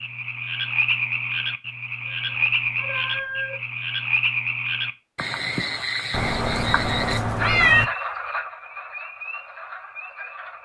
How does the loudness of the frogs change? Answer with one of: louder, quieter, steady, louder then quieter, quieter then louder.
quieter.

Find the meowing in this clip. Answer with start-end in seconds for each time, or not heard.
2.0-3.5, 6.1-7.8.